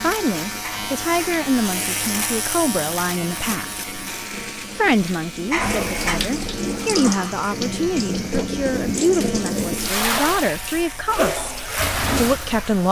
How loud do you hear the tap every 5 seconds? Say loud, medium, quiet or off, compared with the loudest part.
quiet, loud, loud.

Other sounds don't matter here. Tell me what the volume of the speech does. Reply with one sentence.
The volume of the speech stays about the same.